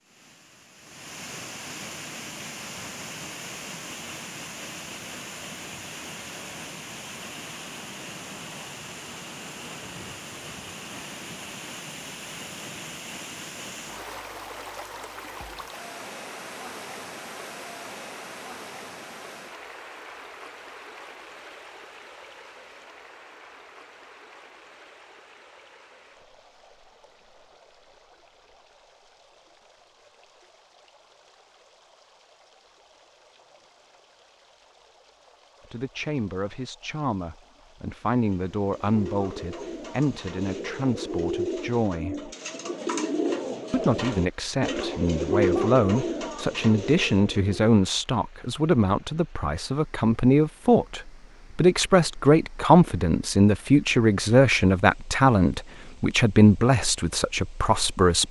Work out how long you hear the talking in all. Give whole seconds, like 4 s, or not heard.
21 s.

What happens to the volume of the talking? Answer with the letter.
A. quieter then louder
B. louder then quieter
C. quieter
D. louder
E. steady
D.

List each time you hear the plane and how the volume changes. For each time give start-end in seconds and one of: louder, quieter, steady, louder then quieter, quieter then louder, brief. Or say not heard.
not heard.